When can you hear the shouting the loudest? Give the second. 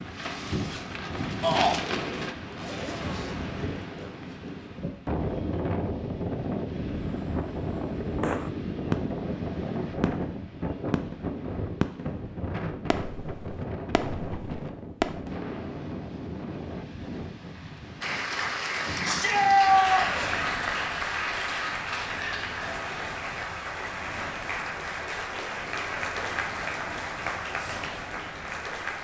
20 s.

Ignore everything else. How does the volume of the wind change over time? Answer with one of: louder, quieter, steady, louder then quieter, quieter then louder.
quieter.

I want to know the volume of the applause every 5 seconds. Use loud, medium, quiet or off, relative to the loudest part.
off, off, off, loud, loud, loud.